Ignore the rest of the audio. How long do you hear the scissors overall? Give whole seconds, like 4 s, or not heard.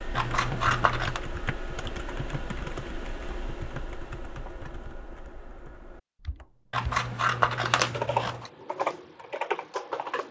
3 s.